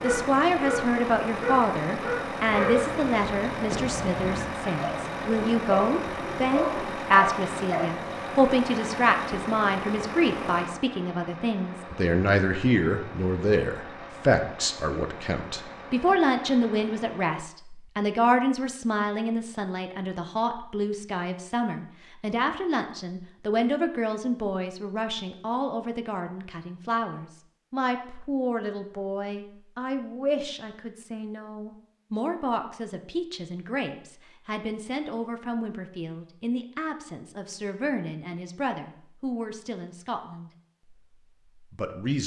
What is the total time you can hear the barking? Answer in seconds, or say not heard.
8 s.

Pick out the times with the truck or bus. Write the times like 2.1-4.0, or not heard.
0.0-17.4.